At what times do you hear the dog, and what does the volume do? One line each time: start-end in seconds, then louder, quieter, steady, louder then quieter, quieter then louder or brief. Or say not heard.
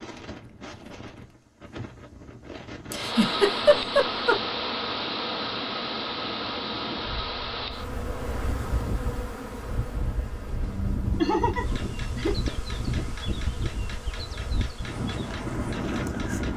not heard.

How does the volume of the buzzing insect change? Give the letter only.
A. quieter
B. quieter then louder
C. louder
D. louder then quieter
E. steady
A.